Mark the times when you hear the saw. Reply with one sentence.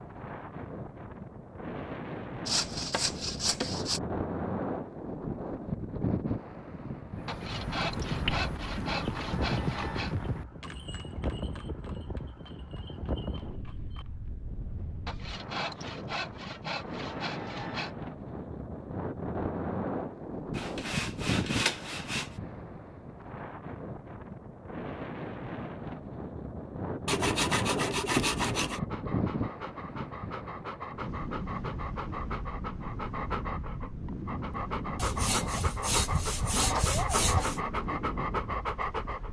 You can hear the saw from 2.5 to 4.0 s, from 7.2 to 10.2 s, from 15.1 to 17.9 s, from 20.6 to 22.3 s, from 27.1 to 28.8 s and from 35.0 to 37.6 s.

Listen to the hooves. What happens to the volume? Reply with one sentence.
The loudness of the hooves goes down.